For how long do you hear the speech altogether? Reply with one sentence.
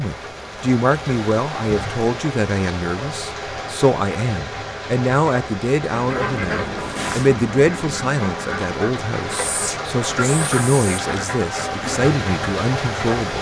The speech can be heard for 13 seconds in total.